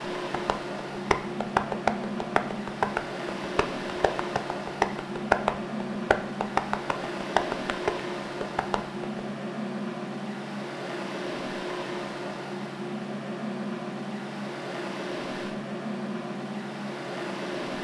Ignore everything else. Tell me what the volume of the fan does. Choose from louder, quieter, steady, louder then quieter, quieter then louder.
steady.